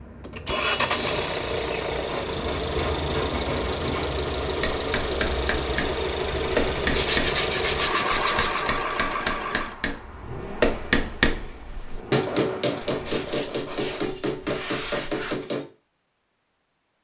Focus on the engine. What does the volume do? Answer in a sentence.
The volume of the engine goes down.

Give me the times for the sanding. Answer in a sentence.
The sanding can be heard from 2.0 to 4.1 s, from 6.9 to 8.7 s and from 12.8 to 15.4 s.